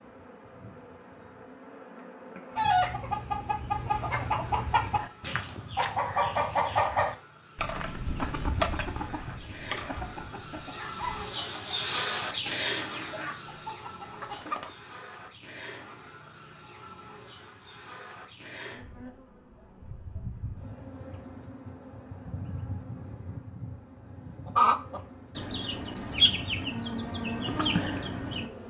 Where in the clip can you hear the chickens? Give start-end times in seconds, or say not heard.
2.5-14.8, 24.4-28.5.